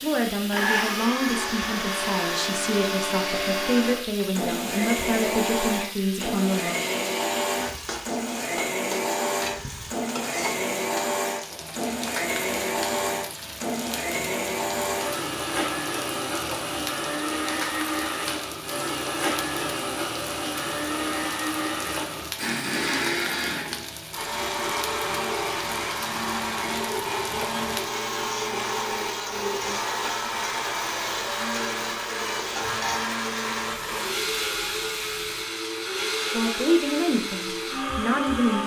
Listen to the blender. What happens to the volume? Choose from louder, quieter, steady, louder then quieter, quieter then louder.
steady.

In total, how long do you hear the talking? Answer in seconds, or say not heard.
9 s.